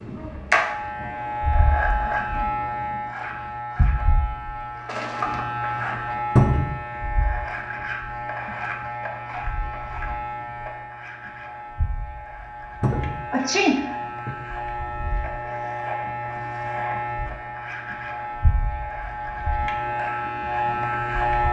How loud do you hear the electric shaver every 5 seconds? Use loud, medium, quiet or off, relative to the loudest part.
loud, medium, medium, medium, loud.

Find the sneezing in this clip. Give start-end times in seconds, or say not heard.
4.8-5.5, 12.9-14.3.